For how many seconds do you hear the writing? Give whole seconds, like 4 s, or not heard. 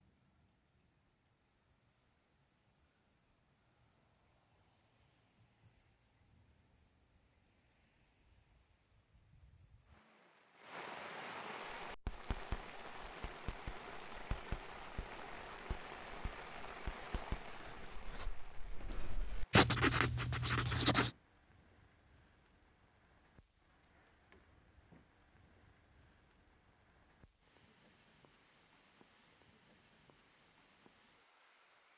9 s.